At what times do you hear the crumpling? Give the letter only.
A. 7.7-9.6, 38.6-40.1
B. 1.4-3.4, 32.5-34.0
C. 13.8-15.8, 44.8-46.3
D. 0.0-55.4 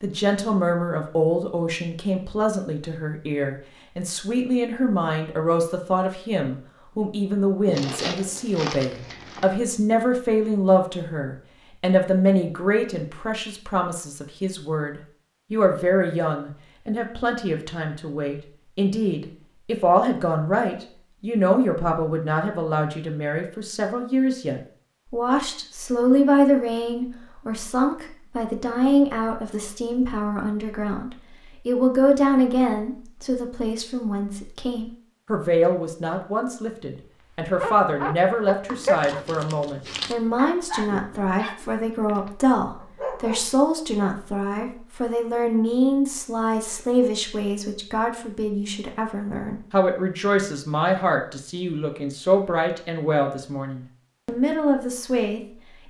A.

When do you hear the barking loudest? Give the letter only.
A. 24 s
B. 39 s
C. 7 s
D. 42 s
B.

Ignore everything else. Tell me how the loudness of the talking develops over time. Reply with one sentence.
The volume of the talking stays about the same.